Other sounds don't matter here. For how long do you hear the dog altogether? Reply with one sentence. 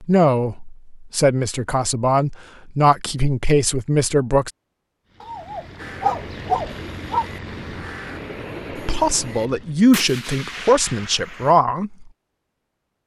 The dog can be heard for 2 seconds in total.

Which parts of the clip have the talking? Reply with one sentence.
You can hear the talking from 0.0 to 4.5 s and from 8.8 to 12.1 s.